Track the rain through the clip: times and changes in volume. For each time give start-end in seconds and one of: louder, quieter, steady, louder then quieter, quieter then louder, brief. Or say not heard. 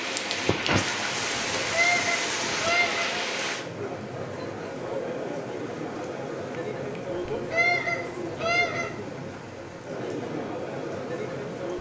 0.0-11.7 quieter.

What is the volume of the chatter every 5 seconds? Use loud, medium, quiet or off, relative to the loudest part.
medium, loud, loud.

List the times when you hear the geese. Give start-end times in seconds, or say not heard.
1.6-3.1, 7.3-8.9.